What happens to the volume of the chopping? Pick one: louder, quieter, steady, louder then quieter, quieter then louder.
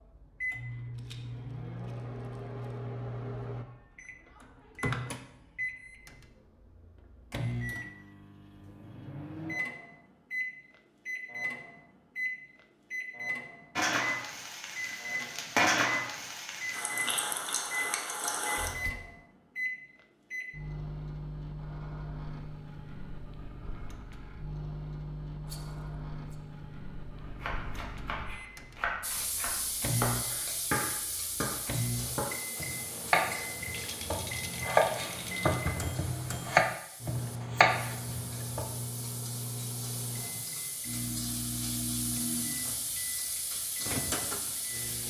louder.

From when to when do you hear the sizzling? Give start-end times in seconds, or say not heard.
13.8-18.9, 29.0-45.0.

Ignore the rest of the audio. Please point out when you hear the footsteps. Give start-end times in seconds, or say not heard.
not heard.